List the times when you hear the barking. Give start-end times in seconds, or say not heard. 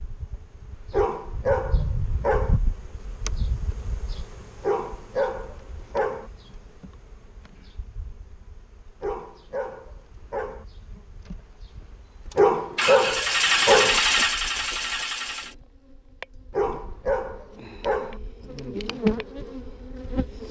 0.9-2.5, 4.6-6.3, 9.0-10.7, 12.3-14.0, 16.5-18.2.